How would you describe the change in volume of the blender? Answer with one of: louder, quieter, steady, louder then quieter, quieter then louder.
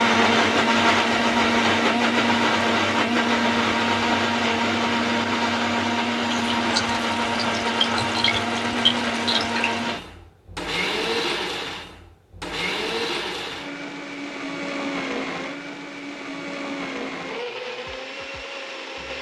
quieter.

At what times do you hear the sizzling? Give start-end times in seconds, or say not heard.
6.2-9.9.